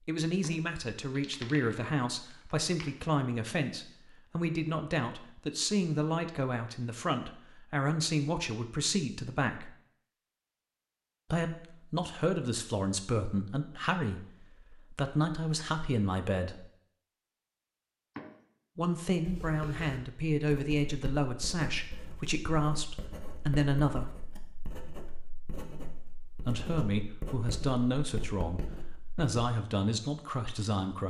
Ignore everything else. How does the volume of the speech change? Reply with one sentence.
The loudness of the speech stays about the same.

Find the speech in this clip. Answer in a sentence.
You can hear the speech from 0.1 to 9.7 s, from 11.3 to 16.7 s, from 18.8 to 24.1 s and from 26.4 to 31.0 s.